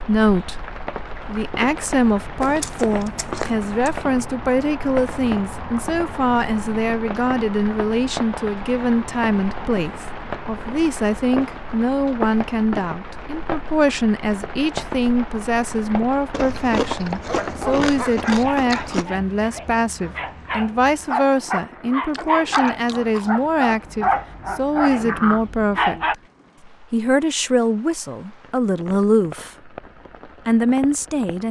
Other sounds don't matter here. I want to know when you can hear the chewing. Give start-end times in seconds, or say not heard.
2.4-4.0, 16.3-19.1, 22.1-24.1.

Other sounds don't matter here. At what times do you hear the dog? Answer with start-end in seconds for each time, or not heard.
17.2-26.1.